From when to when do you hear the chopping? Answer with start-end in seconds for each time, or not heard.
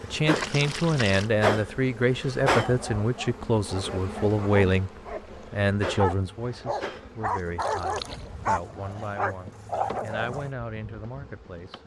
not heard.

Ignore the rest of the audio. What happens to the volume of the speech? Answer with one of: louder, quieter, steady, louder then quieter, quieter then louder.
quieter.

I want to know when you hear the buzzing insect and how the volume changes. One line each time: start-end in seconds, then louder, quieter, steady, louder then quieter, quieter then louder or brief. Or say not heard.
0.0-11.8 quieter.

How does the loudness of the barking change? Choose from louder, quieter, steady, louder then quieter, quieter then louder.
louder.